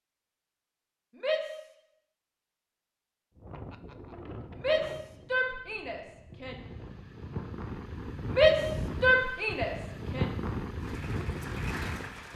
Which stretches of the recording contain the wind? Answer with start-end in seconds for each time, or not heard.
3.4-12.3.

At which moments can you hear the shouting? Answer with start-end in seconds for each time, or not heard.
1.1-1.6, 4.5-6.6, 8.3-10.2.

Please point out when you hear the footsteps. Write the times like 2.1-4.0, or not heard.
not heard.